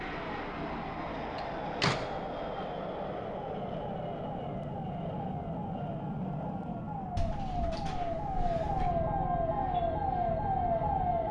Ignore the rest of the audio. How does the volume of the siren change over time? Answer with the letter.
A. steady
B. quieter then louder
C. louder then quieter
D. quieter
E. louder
E.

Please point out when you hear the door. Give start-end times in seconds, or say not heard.
1.4-2.1, 7.2-8.9.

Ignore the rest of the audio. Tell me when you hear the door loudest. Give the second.
2 s.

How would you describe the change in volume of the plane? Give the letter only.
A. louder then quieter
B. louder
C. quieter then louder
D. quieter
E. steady
D.